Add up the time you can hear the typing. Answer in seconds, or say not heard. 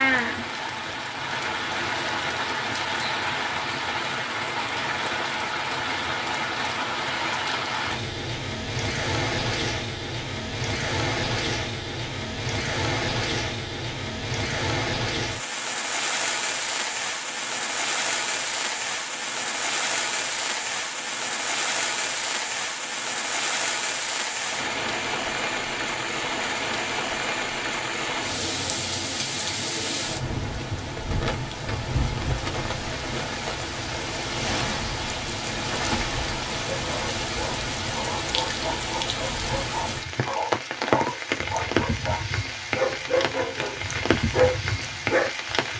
not heard.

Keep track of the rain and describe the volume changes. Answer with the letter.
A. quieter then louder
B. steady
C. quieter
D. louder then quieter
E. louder
B.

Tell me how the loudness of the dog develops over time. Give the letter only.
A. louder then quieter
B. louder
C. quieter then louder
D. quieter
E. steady
B.